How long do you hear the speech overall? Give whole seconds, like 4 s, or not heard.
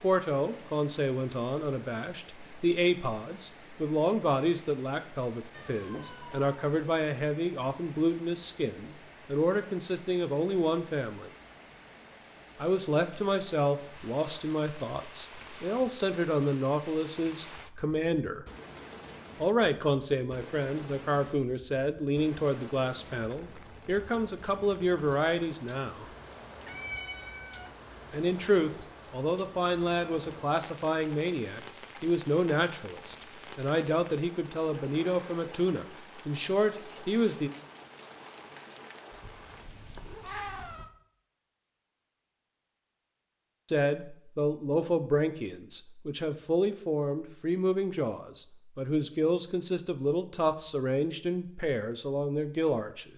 43 s.